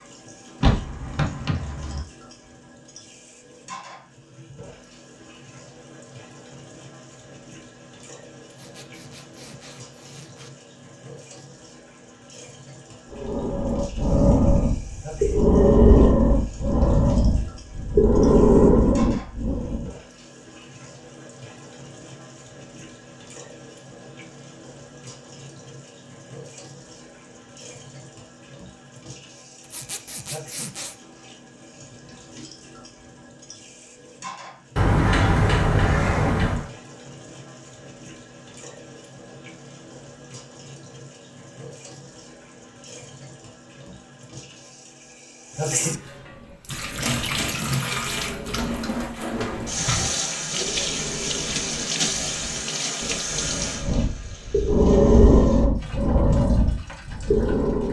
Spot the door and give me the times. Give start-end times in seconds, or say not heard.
0.6-2.0, 34.8-36.7, 49.3-50.1.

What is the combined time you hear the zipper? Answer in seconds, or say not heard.
3 s.